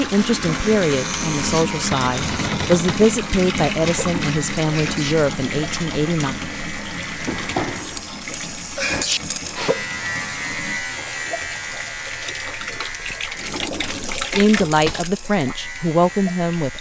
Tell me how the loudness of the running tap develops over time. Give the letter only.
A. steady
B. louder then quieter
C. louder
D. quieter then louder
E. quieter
D.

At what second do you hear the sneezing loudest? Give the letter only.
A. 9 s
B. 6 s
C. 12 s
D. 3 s
A.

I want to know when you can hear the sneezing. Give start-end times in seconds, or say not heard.
4.7-5.2, 8.8-9.2.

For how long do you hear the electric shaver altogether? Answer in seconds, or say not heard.
17 s.